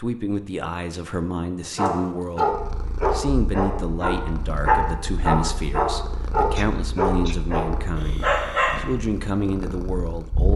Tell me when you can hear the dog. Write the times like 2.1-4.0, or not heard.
1.8-8.8.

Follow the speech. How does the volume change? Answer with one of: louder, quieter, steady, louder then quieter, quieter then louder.
steady.